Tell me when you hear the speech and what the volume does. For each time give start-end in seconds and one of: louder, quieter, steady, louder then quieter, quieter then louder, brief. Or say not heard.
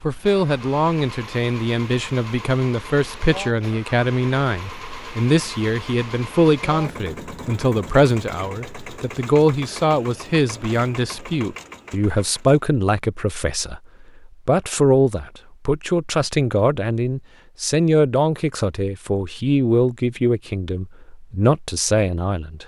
0.0-22.6 steady.